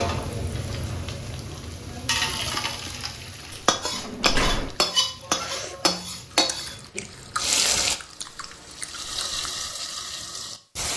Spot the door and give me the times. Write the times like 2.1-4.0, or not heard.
3.5-4.8.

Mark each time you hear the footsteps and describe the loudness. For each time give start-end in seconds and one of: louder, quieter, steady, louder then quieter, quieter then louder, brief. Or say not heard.
not heard.